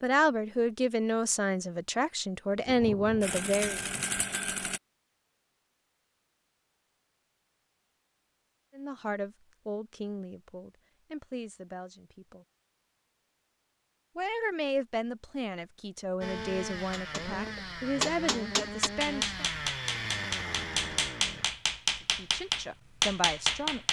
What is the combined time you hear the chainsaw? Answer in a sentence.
You can hear the chainsaw for 7 seconds altogether.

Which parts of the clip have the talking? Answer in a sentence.
The talking can be heard from 0.0 to 3.8 s, from 8.8 to 12.4 s, from 14.2 to 19.5 s and from 22.1 to 23.8 s.